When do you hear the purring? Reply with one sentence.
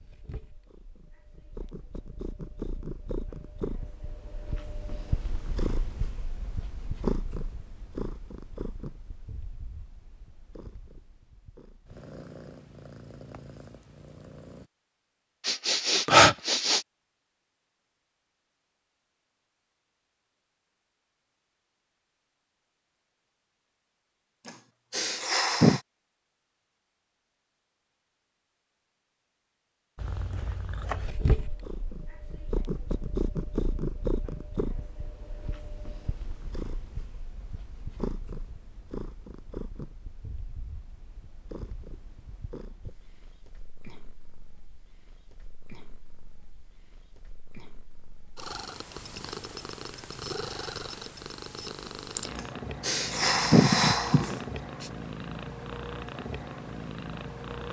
The purring can be heard from 0.0 to 14.7 s and from 29.9 to 57.6 s.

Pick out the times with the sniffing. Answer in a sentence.
You can hear the sniffing from 15.4 to 16.8 s, from 24.4 to 25.8 s and from 52.4 to 54.9 s.